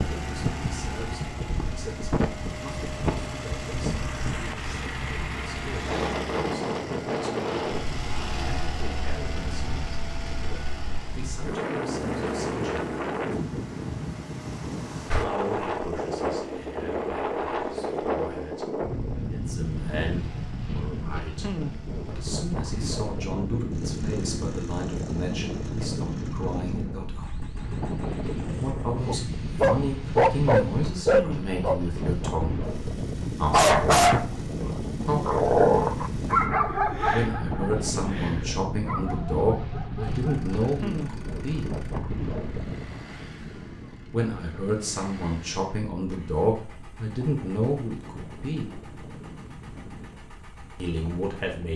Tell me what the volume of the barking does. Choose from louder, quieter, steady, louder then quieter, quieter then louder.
quieter.